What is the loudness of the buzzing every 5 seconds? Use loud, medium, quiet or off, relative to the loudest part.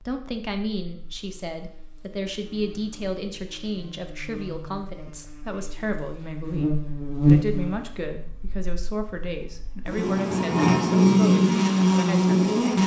quiet, medium, loud.